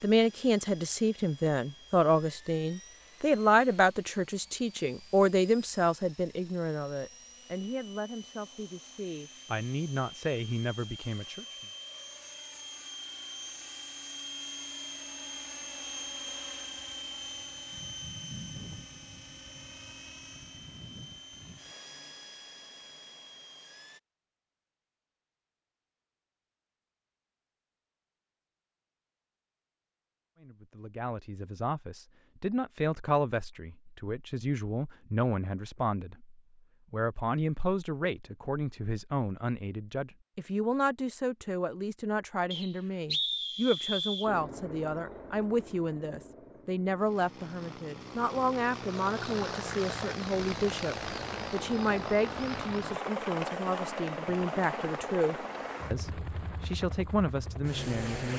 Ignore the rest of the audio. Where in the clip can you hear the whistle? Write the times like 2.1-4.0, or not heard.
42.5-44.3.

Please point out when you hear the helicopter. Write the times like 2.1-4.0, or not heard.
0.0-24.0, 44.2-58.3.